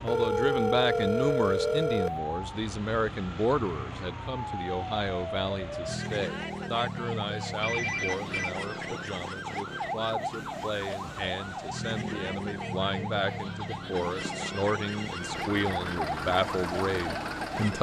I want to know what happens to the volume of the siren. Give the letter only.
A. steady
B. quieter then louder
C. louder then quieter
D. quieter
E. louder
A.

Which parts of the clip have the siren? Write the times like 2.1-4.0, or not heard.
0.0-17.7.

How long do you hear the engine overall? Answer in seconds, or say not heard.
3 s.